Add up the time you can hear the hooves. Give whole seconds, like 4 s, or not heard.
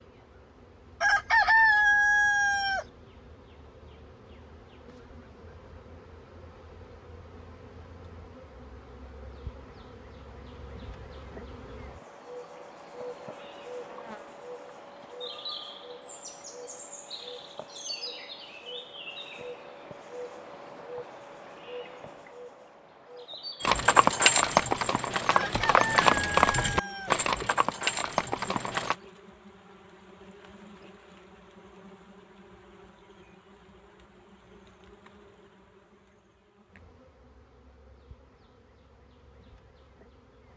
5 s.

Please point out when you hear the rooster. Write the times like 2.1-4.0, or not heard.
1.0-2.9, 25.3-27.1.